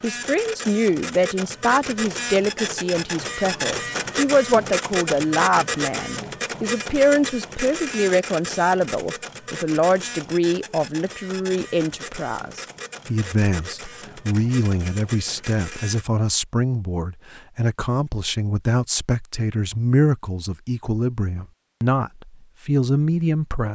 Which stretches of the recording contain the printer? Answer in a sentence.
You can hear the printer from 0.0 to 16.1 s.